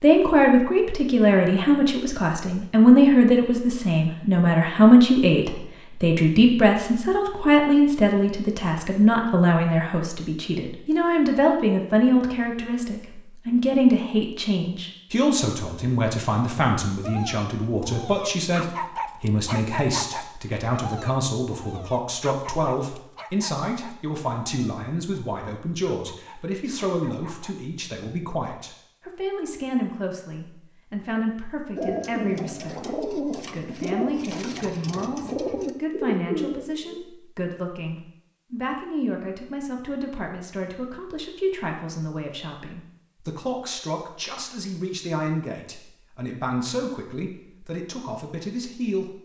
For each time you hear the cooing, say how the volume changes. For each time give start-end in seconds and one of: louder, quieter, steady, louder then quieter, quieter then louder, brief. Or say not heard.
31.8-37.0 steady.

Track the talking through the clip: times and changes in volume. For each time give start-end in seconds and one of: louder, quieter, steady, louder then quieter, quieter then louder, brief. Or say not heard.
0.0-49.2 quieter.